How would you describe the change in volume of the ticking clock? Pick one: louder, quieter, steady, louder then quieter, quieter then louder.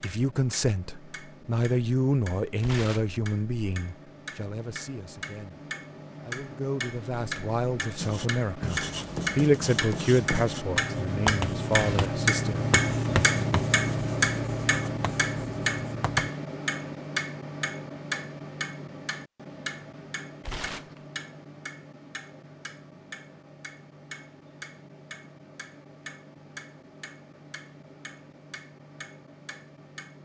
louder then quieter.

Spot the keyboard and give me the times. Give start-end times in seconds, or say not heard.
not heard.